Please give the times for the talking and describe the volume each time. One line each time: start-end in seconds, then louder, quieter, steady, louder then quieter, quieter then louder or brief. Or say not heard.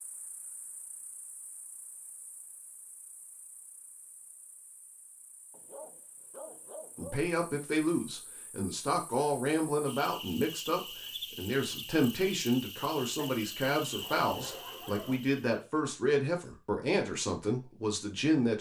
7.0-18.5 steady.